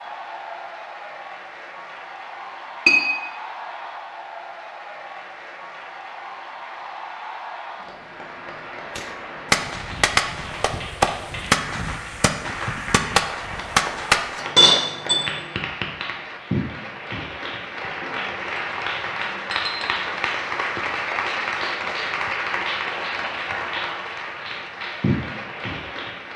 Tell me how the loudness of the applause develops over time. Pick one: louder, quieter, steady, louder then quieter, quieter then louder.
louder.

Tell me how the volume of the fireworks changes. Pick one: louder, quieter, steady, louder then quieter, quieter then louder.
quieter then louder.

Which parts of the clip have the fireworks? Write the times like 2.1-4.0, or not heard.
8.9-14.4.